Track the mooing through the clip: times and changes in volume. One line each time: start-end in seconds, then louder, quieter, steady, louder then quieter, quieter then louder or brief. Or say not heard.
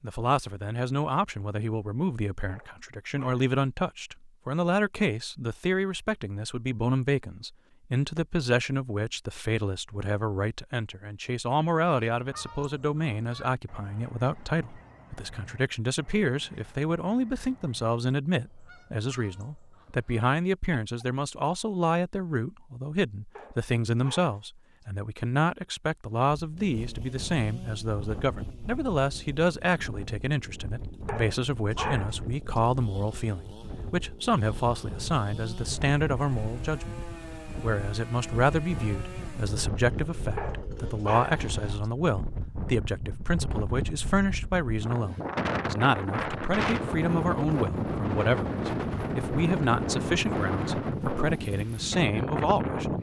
not heard.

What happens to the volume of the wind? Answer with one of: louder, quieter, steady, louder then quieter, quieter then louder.
louder.